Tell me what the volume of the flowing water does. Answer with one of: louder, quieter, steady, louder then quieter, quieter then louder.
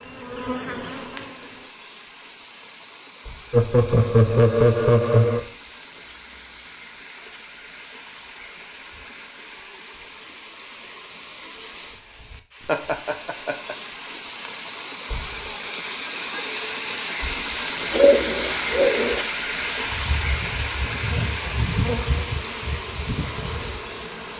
louder.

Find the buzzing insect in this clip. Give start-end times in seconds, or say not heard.
0.0-1.7, 19.6-24.3.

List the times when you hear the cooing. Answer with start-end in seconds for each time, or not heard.
17.9-19.2.